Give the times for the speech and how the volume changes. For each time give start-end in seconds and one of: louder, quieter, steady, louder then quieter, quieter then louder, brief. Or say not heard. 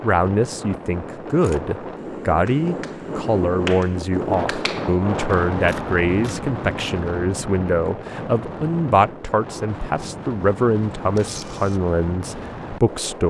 0.0-13.2 steady.